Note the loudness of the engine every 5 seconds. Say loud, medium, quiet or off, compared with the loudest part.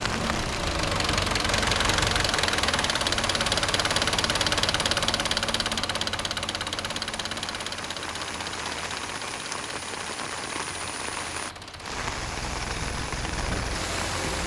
loud, medium, medium.